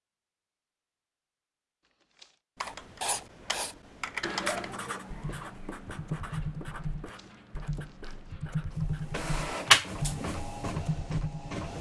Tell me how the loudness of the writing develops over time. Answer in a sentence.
The loudness of the writing goes down.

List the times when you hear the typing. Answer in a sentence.
The typing can be heard from 2.5 to 11.6 s.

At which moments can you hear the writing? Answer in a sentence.
You can hear the writing from 2.6 to 9.2 s.